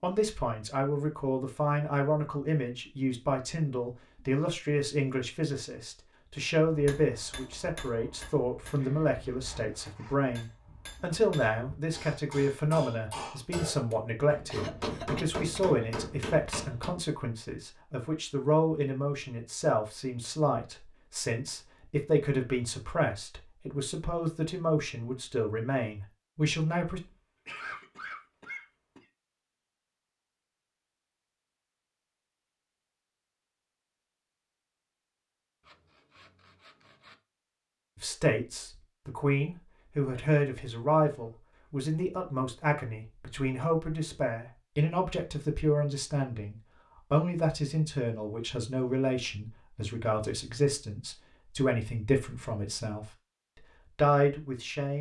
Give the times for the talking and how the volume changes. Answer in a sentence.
The talking can be heard from 0.0 to 27.0 s, at a steady volume; from 38.0 to 53.1 s, at a steady volume; and briefly from 54.0 to 54.9 s.